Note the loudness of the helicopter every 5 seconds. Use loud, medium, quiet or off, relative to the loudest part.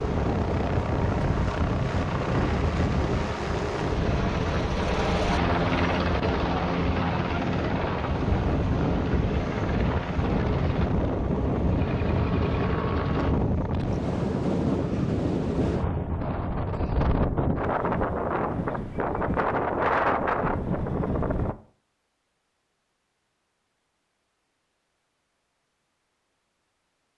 loud, loud, medium, off, off, off.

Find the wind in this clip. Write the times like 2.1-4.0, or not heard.
0.0-21.6.